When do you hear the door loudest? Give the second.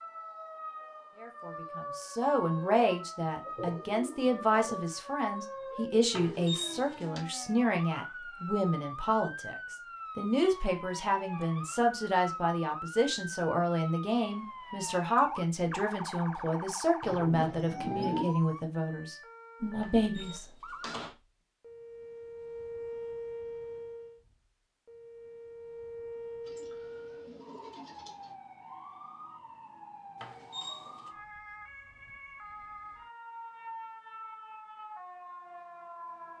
7 s.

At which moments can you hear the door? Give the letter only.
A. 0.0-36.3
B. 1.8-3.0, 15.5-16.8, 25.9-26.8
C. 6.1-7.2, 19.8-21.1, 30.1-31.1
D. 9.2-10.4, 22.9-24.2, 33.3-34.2
C.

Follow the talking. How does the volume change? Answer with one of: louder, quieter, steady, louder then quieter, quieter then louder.
steady.